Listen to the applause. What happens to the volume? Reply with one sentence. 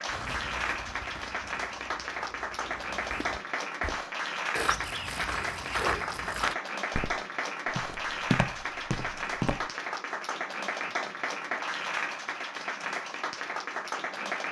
The volume of the applause stays about the same.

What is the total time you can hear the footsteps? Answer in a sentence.
The footsteps can be heard for 10 seconds in total.